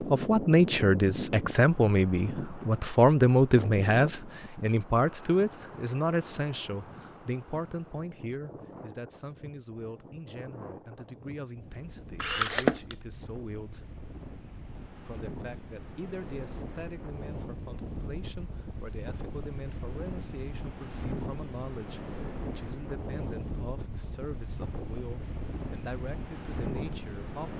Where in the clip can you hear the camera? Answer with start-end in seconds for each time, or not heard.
12.2-12.9.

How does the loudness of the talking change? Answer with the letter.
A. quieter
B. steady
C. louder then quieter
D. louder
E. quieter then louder
A.